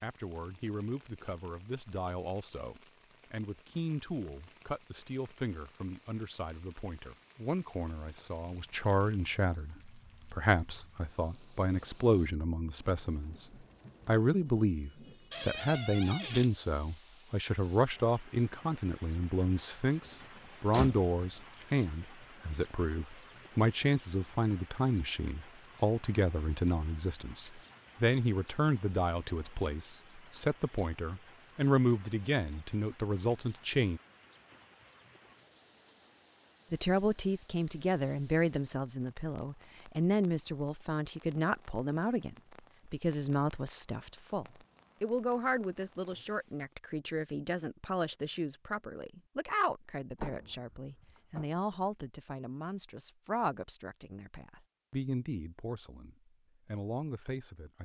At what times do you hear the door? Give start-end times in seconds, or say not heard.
15.3-16.5, 20.1-21.1, 50.1-51.5.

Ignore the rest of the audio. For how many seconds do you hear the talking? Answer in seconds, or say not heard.
55 s.